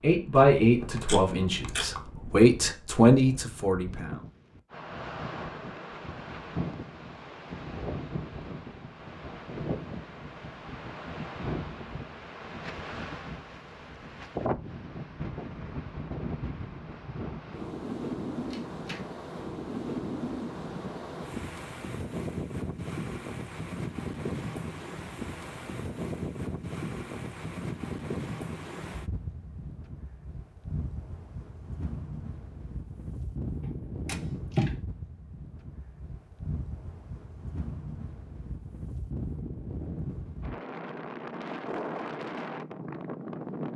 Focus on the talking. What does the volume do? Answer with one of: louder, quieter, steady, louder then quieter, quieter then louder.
quieter then louder.